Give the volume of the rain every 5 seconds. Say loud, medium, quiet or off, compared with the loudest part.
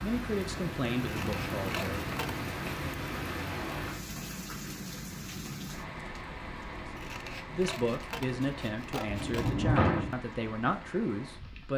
loud, medium, medium.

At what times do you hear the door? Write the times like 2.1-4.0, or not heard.
2.1-2.7, 9.1-10.2.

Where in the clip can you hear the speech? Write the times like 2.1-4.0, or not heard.
0.0-1.9, 7.0-11.7.